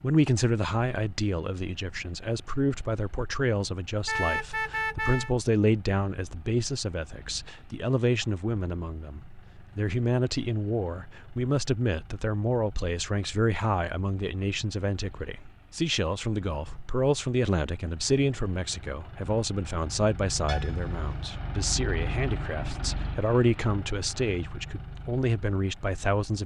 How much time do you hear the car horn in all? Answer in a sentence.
The car horn can be heard for 2 seconds in total.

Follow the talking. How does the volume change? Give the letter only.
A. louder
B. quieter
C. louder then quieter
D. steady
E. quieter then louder
D.